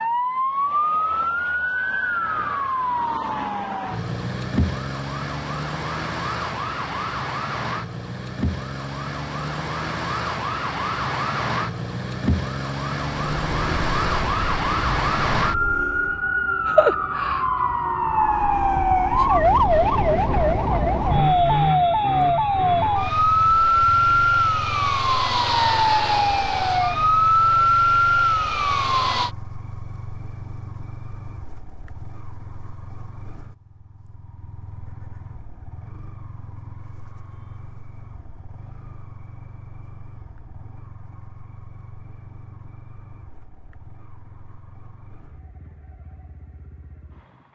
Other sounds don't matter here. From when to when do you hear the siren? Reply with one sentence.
You can hear the siren from 0.0 to 29.3 s.